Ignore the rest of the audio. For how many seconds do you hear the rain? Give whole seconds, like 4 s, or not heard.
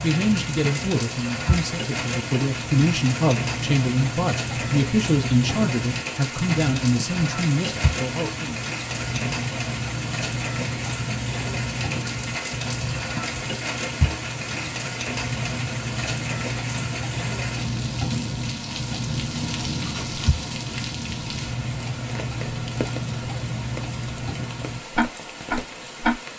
26 s.